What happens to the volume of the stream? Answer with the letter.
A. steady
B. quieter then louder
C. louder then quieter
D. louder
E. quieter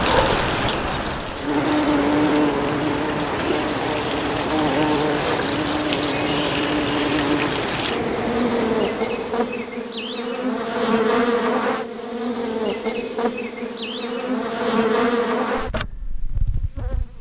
A.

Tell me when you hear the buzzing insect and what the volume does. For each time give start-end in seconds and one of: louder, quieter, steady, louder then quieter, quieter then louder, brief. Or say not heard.
0.0-17.1 steady.